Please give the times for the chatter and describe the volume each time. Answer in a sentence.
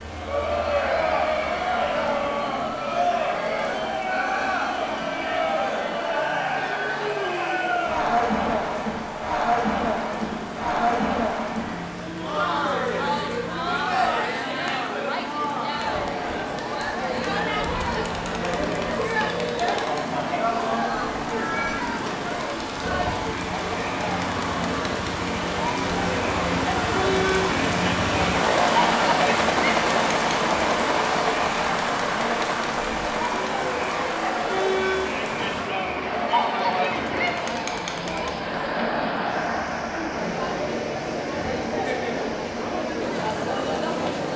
You can hear the chatter from 0.1 to 44.3 s, at a steady volume.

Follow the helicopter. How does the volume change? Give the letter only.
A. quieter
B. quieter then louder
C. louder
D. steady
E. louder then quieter
C.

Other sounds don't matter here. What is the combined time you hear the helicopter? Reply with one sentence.
You can hear the helicopter for 37 seconds altogether.